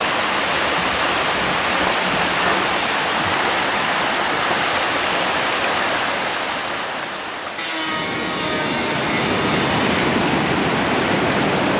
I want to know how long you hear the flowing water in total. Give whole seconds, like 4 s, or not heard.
12 s.